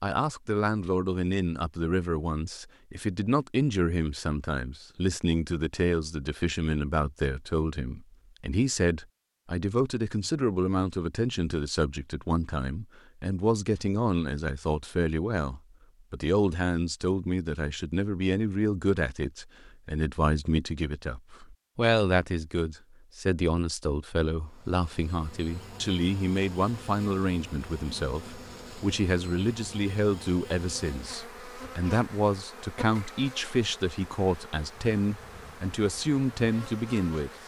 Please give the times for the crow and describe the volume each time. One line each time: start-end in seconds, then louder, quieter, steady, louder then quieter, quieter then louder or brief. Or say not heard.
not heard.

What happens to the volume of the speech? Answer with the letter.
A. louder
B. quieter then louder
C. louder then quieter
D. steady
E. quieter
D.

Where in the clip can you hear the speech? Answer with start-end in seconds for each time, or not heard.
0.0-37.3.